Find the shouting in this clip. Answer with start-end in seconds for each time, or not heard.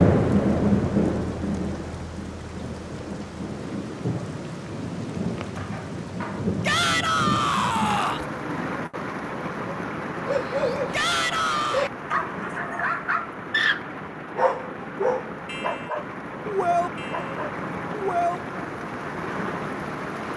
6.6-8.2, 10.9-11.8.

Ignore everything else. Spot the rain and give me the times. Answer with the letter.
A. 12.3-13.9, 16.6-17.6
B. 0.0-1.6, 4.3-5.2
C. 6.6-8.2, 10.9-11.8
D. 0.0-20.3
D.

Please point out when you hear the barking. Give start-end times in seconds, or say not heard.
10.2-18.4.